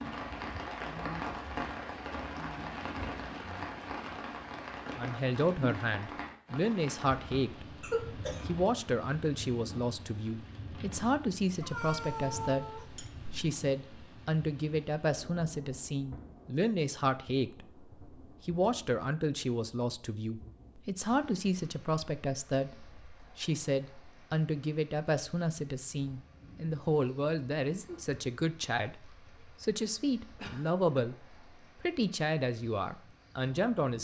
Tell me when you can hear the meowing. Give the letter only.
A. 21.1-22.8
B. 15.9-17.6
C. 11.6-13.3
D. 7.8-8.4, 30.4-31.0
C.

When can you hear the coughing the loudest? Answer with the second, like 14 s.
8 s.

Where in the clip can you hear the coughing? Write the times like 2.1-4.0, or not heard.
7.8-8.4, 30.4-31.0.